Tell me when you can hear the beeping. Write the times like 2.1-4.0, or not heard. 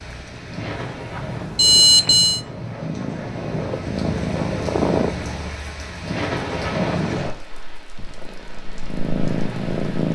1.1-2.4.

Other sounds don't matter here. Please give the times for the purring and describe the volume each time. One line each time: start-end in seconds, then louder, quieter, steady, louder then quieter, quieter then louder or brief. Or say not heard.
0.0-5.1 louder
8.0-10.0 brief.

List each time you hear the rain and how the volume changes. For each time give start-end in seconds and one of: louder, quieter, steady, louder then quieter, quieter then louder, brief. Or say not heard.
0.0-10.0 louder then quieter.